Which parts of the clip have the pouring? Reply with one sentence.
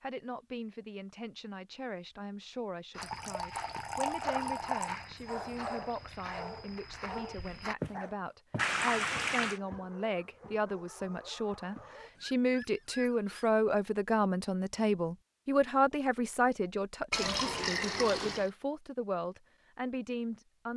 The pouring can be heard from 3.0 to 5.0 s, from 8.6 to 9.6 s and from 17.1 to 18.5 s.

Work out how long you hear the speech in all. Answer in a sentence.
The speech can be heard for 21 seconds in total.